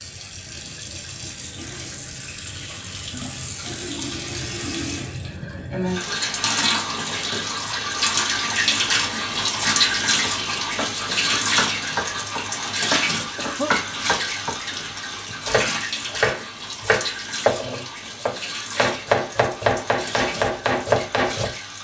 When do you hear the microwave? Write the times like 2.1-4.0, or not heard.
not heard.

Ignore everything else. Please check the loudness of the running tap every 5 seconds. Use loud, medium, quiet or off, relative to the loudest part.
medium, loud, loud, medium, medium.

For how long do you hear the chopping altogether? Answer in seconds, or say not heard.
11 s.